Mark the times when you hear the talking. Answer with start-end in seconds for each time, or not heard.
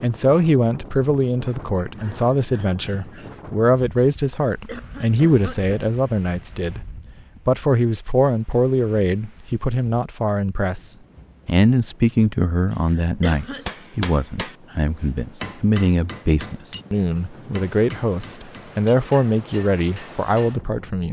0.0-6.8, 7.5-21.0.